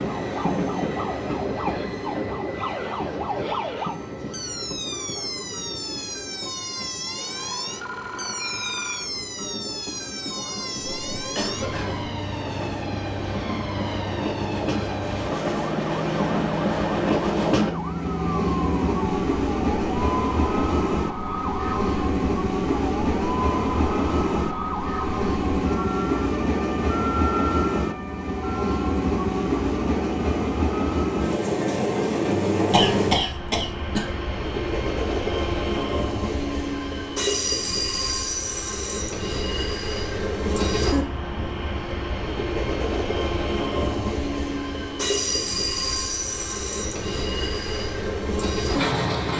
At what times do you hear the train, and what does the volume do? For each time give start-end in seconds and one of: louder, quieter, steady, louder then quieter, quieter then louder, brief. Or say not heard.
0.0-49.3 louder.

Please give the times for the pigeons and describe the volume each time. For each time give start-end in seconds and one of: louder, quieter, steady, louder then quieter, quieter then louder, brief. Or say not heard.
not heard.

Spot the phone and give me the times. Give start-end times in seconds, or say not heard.
7.2-9.1.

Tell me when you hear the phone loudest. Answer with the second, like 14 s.
9 s.